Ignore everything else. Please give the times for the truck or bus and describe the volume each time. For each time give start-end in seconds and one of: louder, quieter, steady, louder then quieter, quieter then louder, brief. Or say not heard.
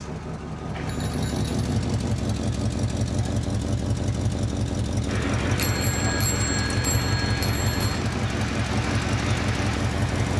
0.0-10.3 steady.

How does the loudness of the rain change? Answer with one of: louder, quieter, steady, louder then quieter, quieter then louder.
steady.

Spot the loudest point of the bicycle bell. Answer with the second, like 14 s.
6 s.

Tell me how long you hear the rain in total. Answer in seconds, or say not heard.
5 s.